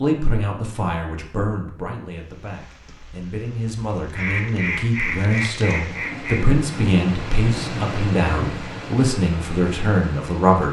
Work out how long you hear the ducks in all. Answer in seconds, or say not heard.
2 s.